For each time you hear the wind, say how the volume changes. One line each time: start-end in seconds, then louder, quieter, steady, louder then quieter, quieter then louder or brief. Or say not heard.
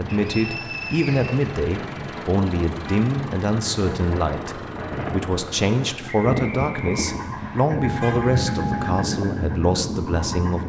0.0-10.6 louder.